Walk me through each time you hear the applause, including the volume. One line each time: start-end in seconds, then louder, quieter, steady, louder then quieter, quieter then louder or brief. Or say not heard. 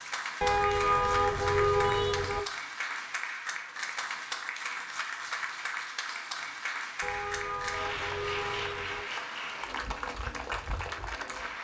0.0-11.5 steady.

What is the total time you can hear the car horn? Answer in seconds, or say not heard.
4 s.